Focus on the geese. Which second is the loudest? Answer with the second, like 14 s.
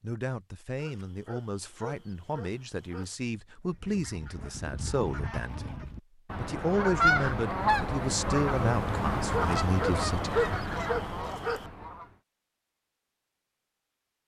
7 s.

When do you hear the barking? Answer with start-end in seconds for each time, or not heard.
0.8-3.1, 9.3-11.7.